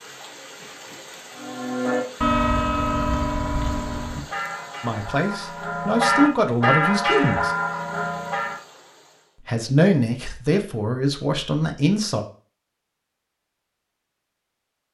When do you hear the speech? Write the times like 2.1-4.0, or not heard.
4.8-7.5, 9.4-12.2.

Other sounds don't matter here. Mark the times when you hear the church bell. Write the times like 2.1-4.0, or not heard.
1.4-8.6.